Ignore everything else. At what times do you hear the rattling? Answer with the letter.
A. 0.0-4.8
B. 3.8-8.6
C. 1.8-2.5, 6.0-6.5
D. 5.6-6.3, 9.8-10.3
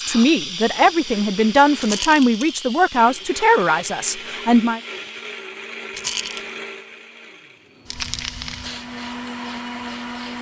C.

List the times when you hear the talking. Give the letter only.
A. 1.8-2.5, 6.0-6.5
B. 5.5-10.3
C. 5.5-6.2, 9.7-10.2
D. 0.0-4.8
D.